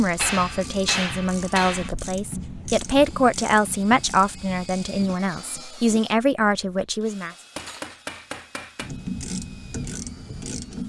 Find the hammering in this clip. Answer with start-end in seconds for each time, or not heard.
0.1-1.9, 7.2-8.9.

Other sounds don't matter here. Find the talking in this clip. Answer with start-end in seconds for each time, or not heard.
0.0-7.3.